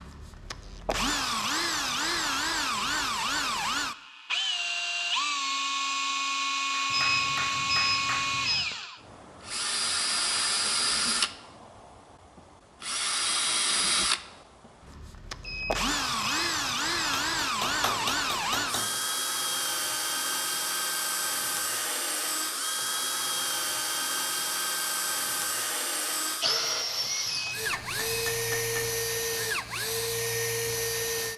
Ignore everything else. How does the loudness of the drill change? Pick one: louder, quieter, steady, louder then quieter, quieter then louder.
steady.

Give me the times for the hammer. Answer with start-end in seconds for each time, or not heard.
6.8-8.8, 17.1-18.9, 27.7-28.9.